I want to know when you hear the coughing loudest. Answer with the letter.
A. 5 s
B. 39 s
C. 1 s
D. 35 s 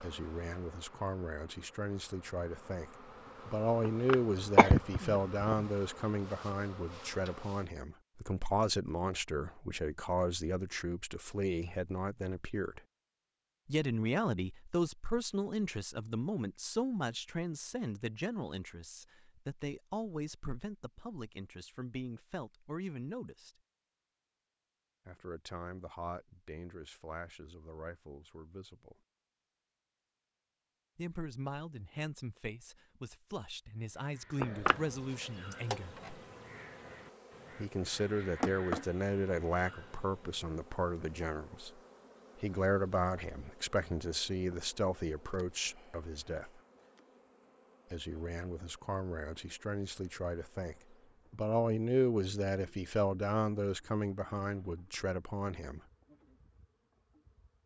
A.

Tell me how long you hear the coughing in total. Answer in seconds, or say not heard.
2 s.